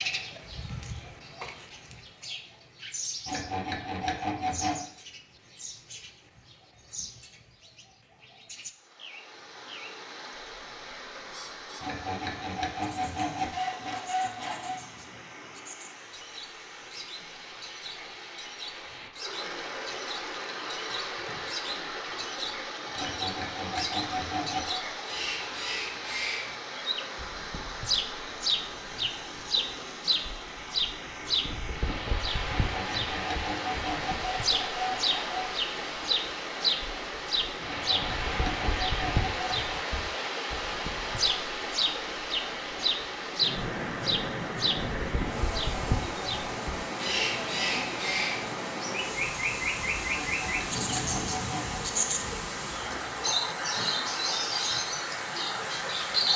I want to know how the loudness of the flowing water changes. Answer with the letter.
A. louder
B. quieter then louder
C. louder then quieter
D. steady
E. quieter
A.